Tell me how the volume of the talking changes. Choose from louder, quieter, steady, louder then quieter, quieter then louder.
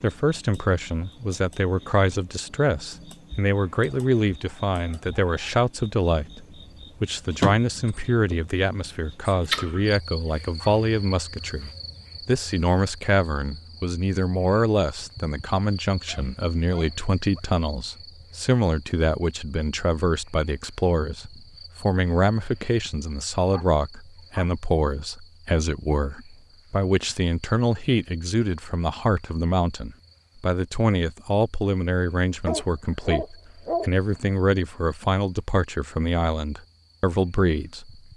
steady.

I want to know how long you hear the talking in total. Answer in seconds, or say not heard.
38 s.